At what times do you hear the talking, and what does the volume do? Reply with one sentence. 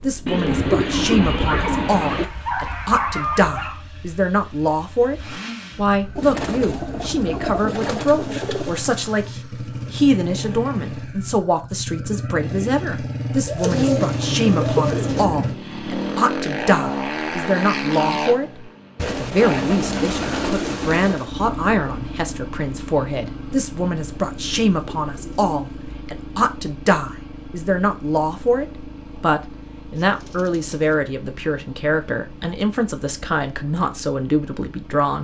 You can hear the talking from 0.0 to 35.2 s, at a steady volume.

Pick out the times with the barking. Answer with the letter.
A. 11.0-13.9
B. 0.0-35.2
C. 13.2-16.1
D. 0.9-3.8
D.